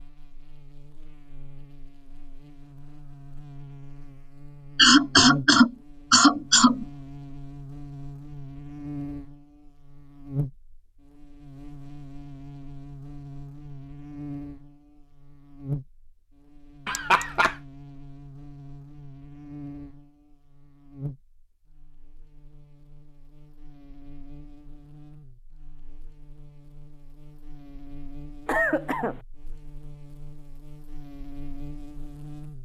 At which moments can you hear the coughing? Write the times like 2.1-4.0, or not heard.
4.8-6.8, 16.9-17.6, 28.4-29.2.